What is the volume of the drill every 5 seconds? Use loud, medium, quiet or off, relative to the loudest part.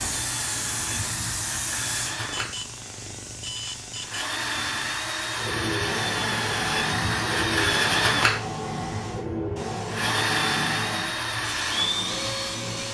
medium, loud, loud.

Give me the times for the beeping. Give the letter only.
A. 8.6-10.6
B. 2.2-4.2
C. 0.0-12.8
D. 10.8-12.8
B.